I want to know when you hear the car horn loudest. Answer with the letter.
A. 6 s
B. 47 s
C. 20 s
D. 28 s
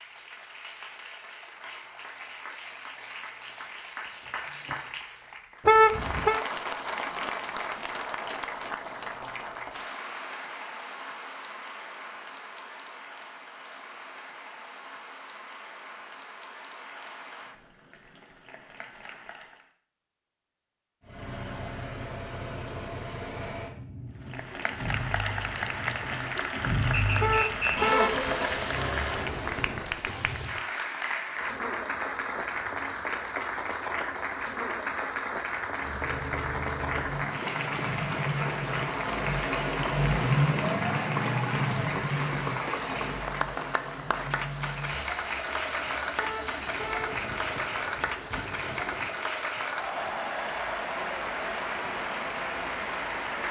A.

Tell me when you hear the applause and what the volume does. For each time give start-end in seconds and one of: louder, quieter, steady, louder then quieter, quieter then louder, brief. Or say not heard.
0.0-19.7 louder then quieter
24.2-53.4 steady.